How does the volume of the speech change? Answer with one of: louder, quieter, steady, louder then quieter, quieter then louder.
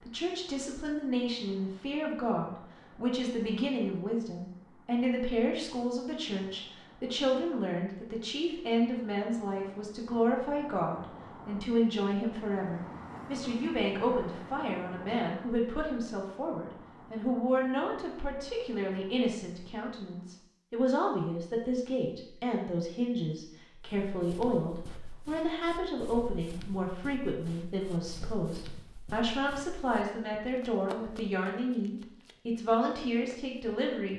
steady.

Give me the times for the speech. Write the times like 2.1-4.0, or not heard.
0.0-34.1.